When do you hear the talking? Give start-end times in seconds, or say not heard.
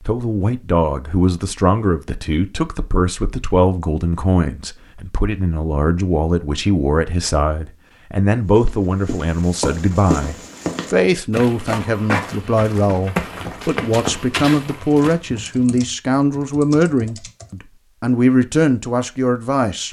0.0-19.8.